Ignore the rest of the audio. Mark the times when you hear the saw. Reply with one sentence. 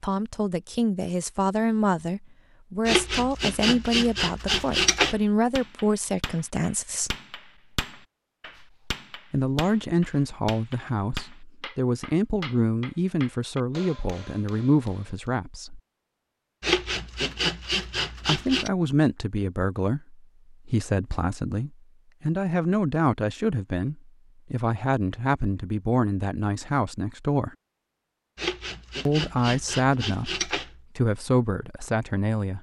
The saw can be heard from 2.9 to 5.2 s, from 16.6 to 18.7 s and from 28.4 to 30.8 s.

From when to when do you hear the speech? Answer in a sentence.
The speech can be heard from 0.0 to 7.2 s, from 9.3 to 15.8 s, from 18.2 to 27.6 s and from 29.1 to 32.5 s.